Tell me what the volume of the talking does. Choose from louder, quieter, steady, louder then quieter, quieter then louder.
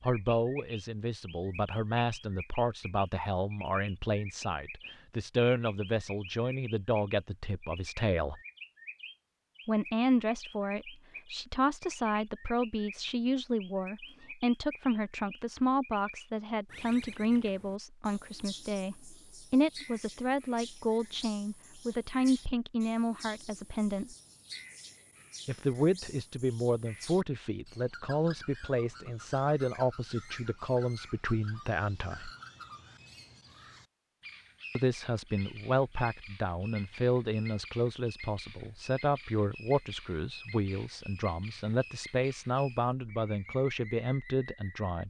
steady.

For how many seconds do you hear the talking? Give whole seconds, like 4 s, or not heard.
40 s.